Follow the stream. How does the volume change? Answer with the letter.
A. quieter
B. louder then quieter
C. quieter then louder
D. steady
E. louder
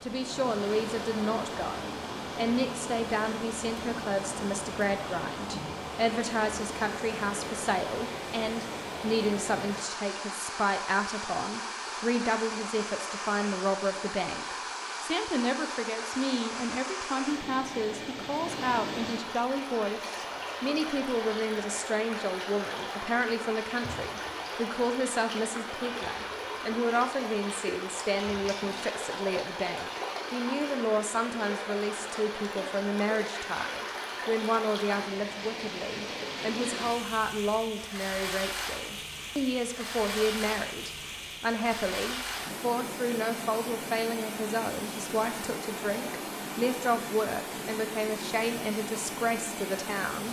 D.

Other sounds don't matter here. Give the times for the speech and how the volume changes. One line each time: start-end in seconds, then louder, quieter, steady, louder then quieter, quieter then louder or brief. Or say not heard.
0.0-50.2 steady.